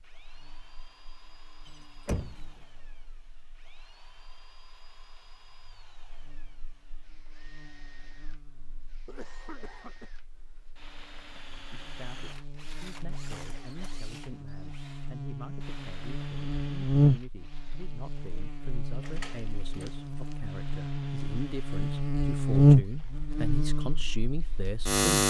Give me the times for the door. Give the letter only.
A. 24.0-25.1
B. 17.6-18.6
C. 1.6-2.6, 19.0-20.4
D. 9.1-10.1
C.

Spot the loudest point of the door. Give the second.
2 s.